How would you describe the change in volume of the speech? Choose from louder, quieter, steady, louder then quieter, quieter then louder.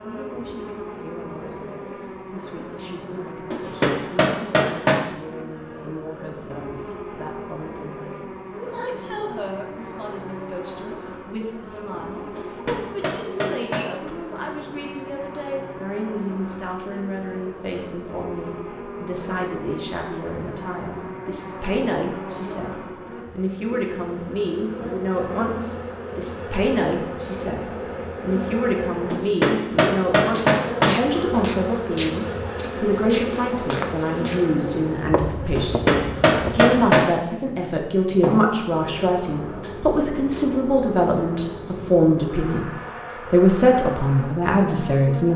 louder.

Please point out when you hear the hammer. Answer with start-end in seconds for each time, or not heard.
3.5-5.0, 12.3-14.1, 29.1-31.0, 35.5-37.1.